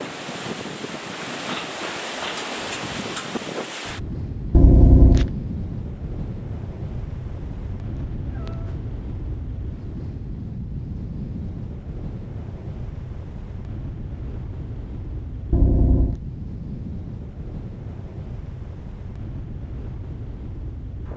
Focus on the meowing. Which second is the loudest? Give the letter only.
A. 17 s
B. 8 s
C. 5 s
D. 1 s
C.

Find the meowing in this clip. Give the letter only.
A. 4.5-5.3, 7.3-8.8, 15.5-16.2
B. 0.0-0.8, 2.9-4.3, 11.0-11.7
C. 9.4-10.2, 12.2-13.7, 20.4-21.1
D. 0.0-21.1
A.